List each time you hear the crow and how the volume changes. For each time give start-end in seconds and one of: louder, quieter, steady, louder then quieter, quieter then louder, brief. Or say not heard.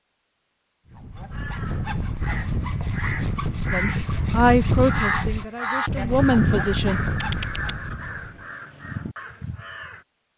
1.3-10.1 louder then quieter.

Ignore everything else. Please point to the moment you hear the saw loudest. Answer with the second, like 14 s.
5 s.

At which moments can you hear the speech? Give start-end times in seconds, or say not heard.
3.7-7.0.